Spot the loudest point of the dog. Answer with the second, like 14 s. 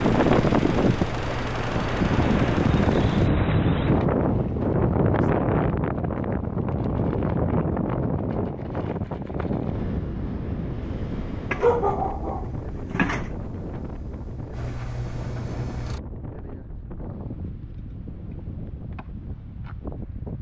12 s.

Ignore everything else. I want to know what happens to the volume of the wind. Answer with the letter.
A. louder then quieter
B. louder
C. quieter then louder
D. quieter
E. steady
D.